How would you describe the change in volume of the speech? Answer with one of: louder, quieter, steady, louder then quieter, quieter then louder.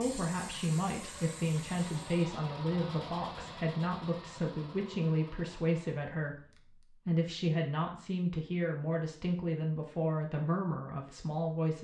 steady.